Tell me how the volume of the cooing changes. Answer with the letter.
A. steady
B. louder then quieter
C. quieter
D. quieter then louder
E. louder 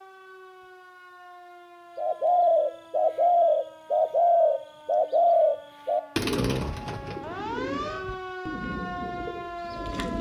C.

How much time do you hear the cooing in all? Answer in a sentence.
You can hear the cooing for 8 seconds altogether.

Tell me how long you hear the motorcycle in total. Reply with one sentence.
The motorcycle can't be heard in this clip.